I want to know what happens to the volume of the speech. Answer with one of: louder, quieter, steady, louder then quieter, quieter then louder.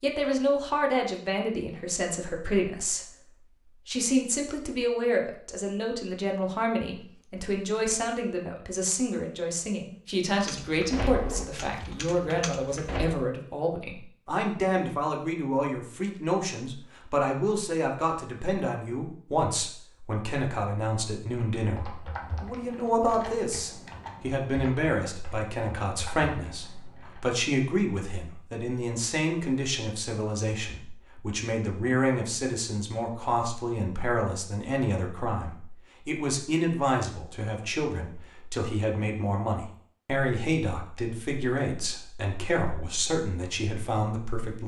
steady.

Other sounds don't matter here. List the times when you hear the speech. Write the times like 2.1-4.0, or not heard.
0.0-3.1, 3.9-44.6.